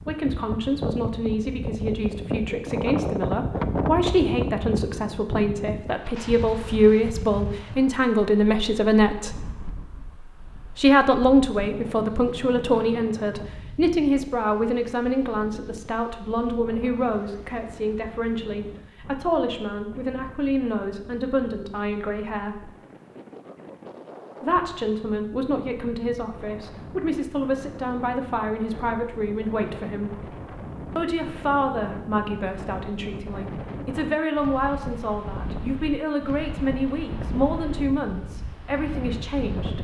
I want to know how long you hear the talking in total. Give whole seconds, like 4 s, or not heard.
36 s.